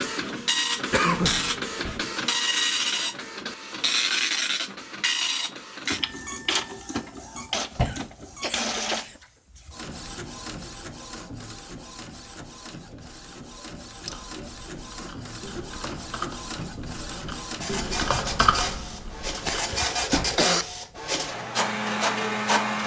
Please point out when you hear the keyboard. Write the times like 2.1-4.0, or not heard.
14.1-19.9.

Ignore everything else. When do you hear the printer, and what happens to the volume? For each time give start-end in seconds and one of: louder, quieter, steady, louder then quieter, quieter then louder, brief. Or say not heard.
0.0-22.8 quieter then louder.